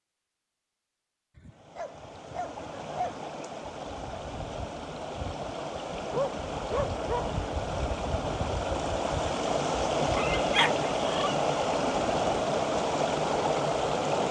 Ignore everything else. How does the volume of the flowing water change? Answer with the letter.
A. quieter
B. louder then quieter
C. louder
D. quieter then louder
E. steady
C.